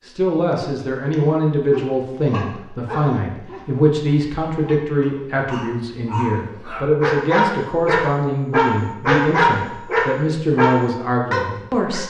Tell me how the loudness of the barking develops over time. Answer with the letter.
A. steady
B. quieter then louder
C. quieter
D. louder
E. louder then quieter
B.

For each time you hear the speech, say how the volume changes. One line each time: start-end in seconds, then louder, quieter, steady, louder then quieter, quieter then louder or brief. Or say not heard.
0.1-12.0 steady.